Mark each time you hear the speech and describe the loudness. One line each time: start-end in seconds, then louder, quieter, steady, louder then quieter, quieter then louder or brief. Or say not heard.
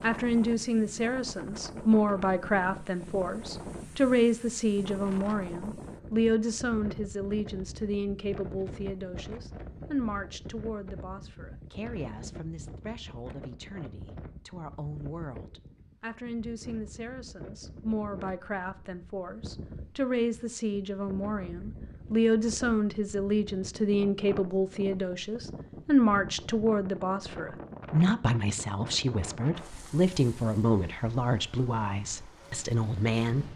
0.0-33.5 quieter then louder.